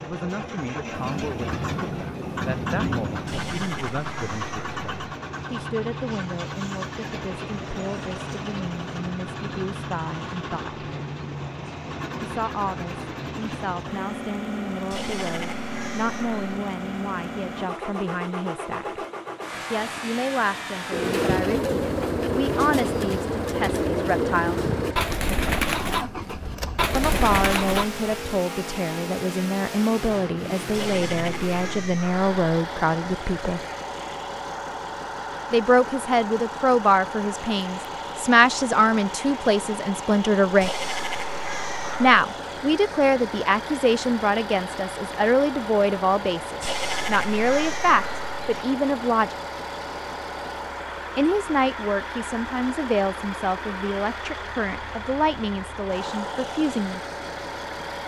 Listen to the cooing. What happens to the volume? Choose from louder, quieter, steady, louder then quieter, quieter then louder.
steady.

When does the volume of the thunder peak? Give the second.
3 s.